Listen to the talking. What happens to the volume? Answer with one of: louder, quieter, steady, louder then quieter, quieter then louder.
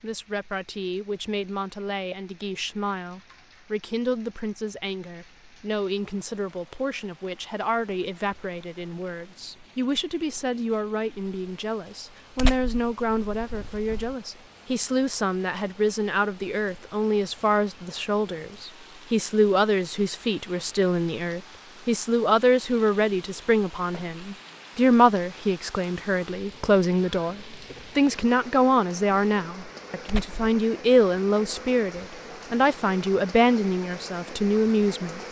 louder.